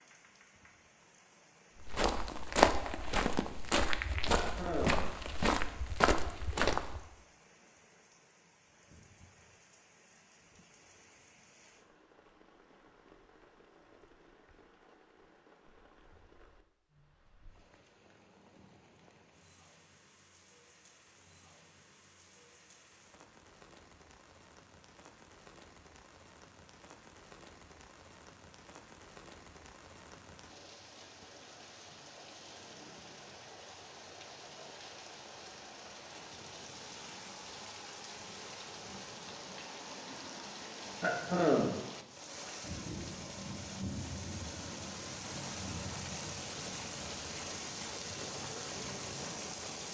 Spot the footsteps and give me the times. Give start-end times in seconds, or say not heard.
1.8-7.1.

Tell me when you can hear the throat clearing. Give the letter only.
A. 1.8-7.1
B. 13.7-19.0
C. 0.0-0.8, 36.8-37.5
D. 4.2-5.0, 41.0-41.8
D.